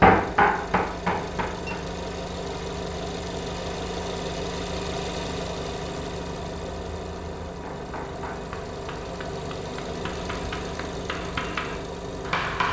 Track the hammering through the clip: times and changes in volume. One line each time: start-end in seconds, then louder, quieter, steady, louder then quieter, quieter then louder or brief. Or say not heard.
0.0-1.9 brief
7.5-12.6 quieter then louder.